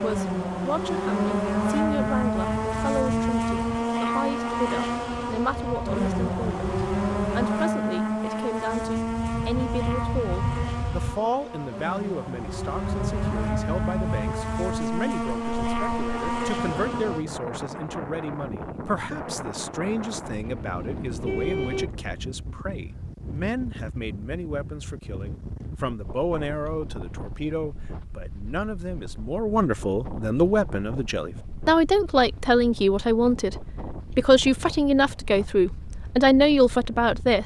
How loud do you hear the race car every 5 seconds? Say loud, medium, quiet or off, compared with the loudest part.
loud, loud, medium, loud, off, off, off, off.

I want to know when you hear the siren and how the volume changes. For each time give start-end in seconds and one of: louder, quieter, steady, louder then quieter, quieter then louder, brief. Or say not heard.
not heard.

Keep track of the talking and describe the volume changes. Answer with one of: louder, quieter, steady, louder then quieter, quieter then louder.
louder.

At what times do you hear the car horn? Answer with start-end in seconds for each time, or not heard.
20.8-21.9.